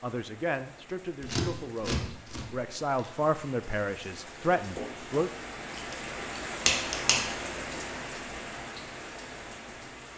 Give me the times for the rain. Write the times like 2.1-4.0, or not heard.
0.0-10.1.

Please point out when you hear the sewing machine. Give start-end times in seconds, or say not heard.
not heard.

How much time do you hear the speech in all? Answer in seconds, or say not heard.
5 s.